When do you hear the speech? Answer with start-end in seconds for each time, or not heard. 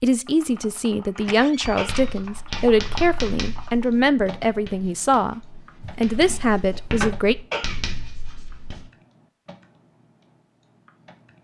0.0-7.3.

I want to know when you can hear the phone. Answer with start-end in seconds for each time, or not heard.
not heard.